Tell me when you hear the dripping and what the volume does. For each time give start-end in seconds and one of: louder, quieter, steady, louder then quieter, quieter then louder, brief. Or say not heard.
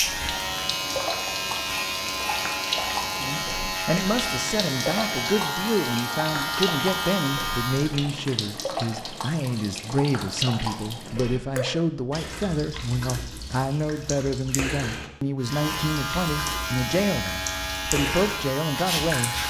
0.0-19.4 steady.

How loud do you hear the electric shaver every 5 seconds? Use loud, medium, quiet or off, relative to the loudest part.
loud, loud, off, loud.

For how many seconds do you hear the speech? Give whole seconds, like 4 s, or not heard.
16 s.